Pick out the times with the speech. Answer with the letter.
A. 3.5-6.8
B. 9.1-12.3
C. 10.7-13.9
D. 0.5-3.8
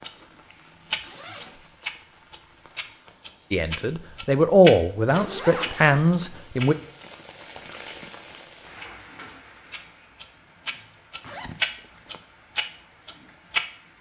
A.